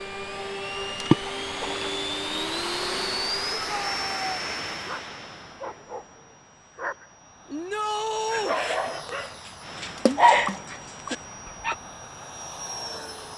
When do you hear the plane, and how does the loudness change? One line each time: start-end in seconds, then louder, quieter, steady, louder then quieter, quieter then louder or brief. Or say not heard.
0.0-13.3 quieter then louder.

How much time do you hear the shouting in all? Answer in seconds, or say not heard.
2 s.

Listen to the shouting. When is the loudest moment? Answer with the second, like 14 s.
8 s.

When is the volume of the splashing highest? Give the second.
1 s.